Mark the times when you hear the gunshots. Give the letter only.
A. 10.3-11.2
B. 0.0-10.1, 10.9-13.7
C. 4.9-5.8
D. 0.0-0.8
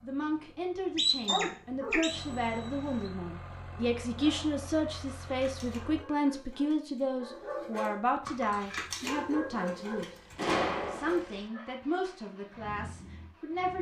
A.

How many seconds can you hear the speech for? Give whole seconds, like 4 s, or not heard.
13 s.